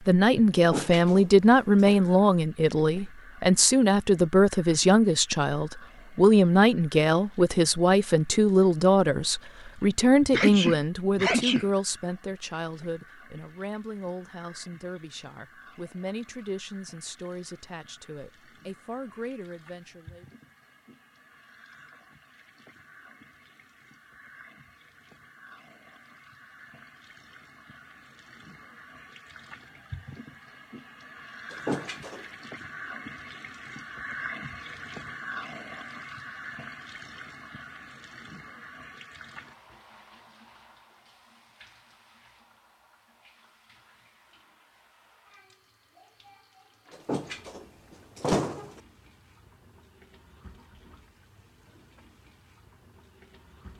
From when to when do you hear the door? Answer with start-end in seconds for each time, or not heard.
0.6-1.9, 31.5-32.2, 46.9-48.8.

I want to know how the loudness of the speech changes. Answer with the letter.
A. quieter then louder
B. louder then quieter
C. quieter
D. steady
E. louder
C.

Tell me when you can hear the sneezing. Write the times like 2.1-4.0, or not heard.
10.3-11.7.